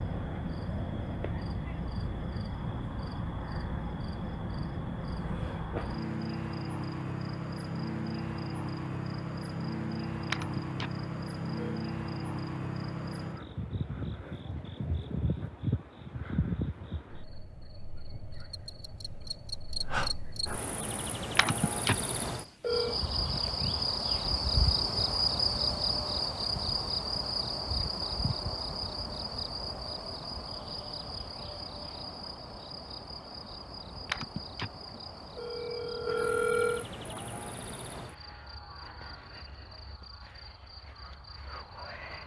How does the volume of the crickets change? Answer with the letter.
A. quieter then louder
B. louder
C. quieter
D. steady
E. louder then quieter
C.